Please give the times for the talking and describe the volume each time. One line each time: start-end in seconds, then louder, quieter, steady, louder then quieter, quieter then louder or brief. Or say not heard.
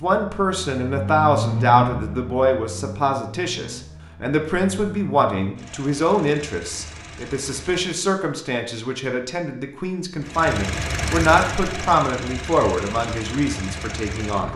0.0-14.5 steady.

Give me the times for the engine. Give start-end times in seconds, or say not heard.
0.0-8.0, 10.2-14.5.